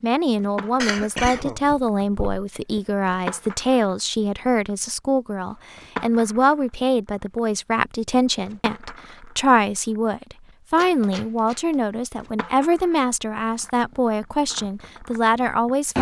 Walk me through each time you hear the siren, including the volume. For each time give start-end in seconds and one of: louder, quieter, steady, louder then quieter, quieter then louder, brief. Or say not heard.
not heard.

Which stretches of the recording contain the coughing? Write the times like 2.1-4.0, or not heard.
0.8-2.8.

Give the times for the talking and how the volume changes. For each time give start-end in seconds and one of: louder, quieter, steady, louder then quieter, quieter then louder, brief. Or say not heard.
0.0-15.9 steady.